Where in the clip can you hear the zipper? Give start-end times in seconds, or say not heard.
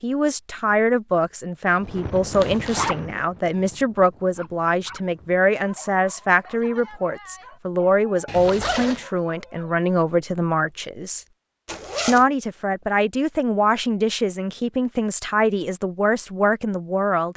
2.3-3.0, 8.2-9.1, 11.7-12.2.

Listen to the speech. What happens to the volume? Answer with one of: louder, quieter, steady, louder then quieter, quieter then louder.
steady.